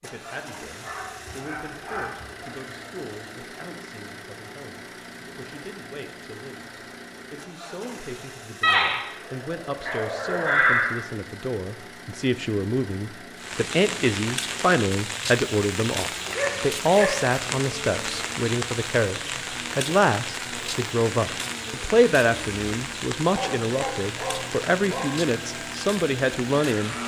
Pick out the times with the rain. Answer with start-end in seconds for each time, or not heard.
13.3-27.0.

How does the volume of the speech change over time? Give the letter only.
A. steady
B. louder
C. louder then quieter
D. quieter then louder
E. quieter
B.